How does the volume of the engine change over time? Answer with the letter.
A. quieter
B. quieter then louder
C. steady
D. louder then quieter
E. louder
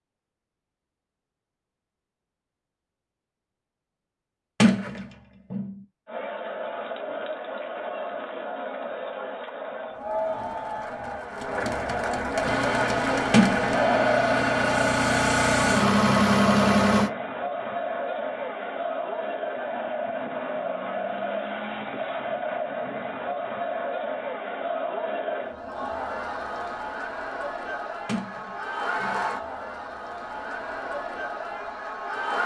E.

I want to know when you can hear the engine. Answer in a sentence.
The engine can be heard from 12.4 to 17.1 s.